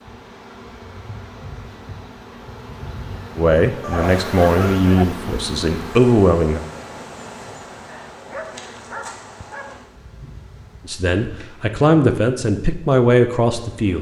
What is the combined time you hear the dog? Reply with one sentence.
The dog can be heard for 3 seconds in total.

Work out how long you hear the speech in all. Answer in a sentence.
You can hear the speech for 6 seconds altogether.